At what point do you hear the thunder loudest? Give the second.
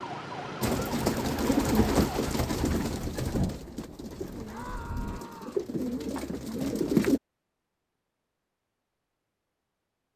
3 s.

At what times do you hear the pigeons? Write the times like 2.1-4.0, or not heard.
0.6-7.2.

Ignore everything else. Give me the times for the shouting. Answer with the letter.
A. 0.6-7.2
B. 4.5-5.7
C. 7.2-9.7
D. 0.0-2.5
B.